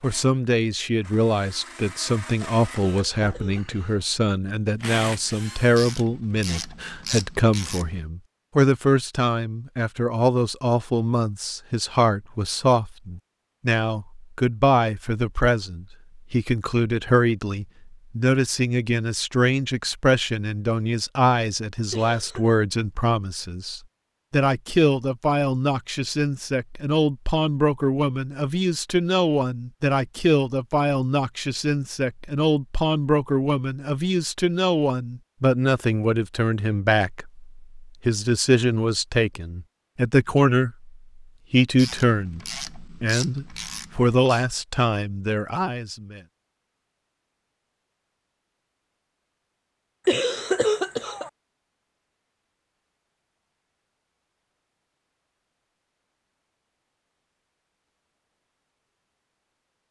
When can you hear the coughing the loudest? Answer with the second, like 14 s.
51 s.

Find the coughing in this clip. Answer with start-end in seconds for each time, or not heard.
2.8-4.0, 21.9-22.5, 50.0-51.3.